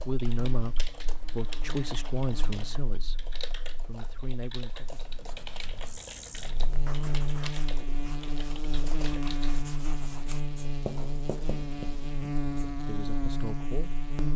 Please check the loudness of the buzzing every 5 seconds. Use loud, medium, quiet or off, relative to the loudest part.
quiet, loud, loud.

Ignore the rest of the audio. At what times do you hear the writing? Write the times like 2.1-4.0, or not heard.
4.7-12.7.